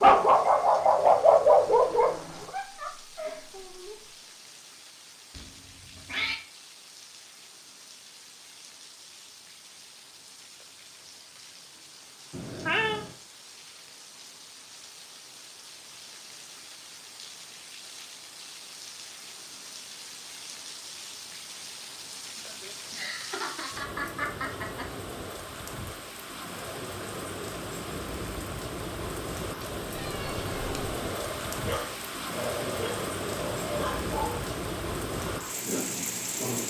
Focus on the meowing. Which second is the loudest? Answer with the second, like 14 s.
13 s.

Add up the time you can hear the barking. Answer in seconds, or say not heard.
8 s.